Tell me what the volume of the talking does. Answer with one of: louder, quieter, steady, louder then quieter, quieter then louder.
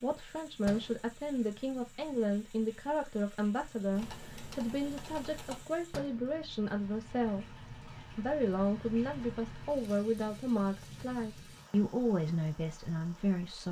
steady.